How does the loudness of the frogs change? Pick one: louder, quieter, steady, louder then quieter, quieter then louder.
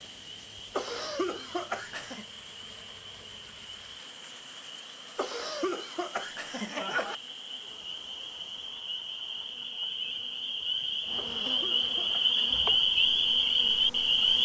louder.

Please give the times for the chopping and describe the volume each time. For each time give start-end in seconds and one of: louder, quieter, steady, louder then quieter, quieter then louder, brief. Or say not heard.
not heard.